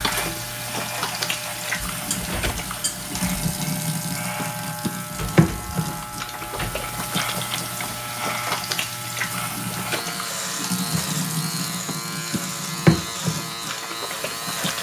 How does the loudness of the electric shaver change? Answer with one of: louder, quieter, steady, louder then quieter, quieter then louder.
steady.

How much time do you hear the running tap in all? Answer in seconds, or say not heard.
15 s.